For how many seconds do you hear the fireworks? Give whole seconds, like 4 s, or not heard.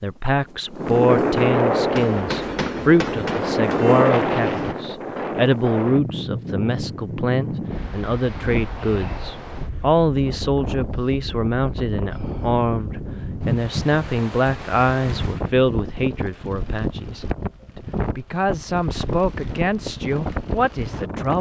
3 s.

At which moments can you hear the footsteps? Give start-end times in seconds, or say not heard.
not heard.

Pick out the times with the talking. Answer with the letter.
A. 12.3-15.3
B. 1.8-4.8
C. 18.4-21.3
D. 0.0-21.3
D.